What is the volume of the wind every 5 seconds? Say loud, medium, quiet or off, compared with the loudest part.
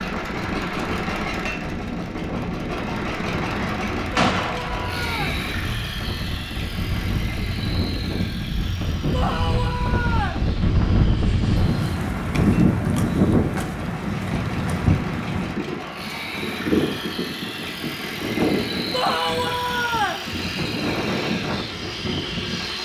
medium, medium, loud, medium, medium.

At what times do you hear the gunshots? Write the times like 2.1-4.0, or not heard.
4.2-5.7.